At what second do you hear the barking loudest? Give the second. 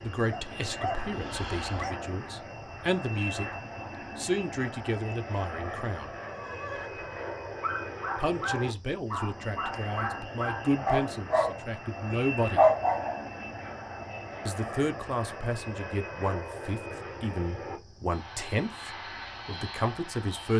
13 s.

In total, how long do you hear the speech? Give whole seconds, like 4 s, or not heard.
16 s.